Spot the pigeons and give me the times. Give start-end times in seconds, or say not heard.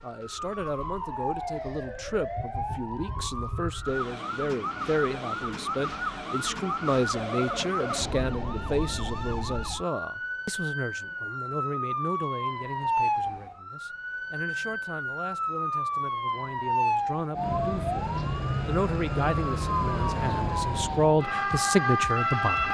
not heard.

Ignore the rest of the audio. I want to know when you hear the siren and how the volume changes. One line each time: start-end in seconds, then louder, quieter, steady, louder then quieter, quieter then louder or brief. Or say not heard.
0.0-22.6 louder.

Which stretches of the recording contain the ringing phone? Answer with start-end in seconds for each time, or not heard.
6.6-8.1.